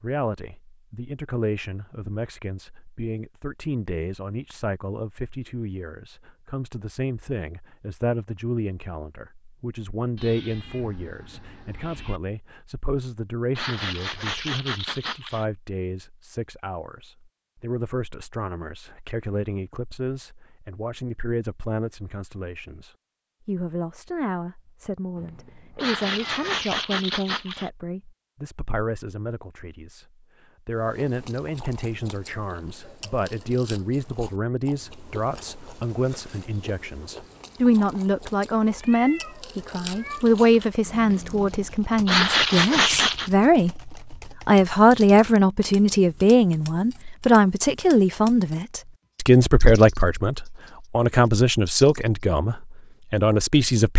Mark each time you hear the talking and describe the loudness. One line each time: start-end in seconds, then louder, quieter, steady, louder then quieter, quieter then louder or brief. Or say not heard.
0.0-53.9 louder.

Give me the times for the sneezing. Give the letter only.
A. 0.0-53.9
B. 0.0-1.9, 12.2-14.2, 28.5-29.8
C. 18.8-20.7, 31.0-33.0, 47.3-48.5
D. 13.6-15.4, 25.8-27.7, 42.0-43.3
D.